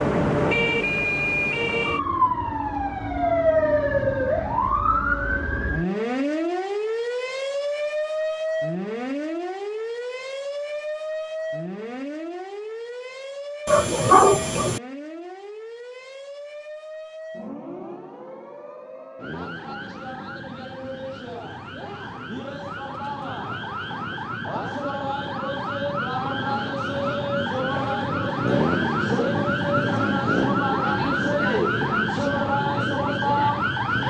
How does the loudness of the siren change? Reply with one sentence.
The volume of the siren goes down, then up.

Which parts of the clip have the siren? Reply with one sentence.
The siren can be heard from 0.0 to 34.0 s.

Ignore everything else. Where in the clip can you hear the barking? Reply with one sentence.
The barking can be heard from 13.7 to 14.8 s.